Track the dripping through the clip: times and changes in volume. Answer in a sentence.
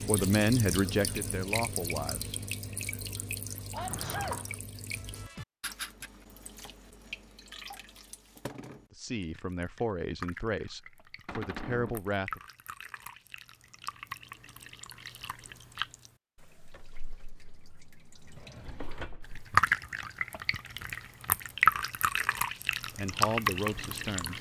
You can hear the dripping from 0.0 to 24.3 s, getting quieter then louder.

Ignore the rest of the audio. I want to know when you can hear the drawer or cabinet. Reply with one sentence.
You can hear the drawer or cabinet from 3.8 to 4.5 s, from 11.2 to 12.0 s and from 18.4 to 19.4 s.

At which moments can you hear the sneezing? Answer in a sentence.
You can hear the sneezing from 3.7 to 4.5 s.